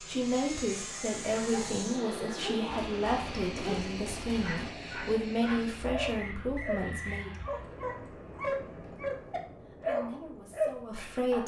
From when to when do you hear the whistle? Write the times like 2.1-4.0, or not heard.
6.2-7.3.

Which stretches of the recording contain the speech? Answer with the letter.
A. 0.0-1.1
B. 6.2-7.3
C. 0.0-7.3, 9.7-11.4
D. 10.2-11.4
C.